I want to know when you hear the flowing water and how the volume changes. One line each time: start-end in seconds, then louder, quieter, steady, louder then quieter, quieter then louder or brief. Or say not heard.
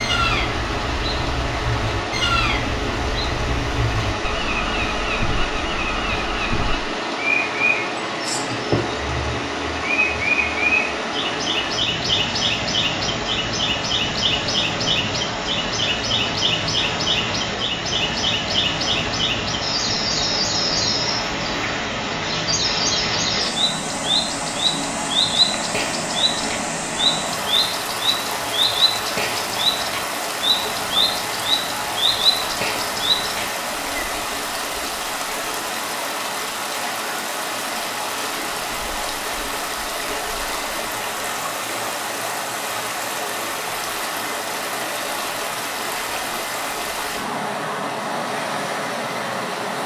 0.0-49.8 steady.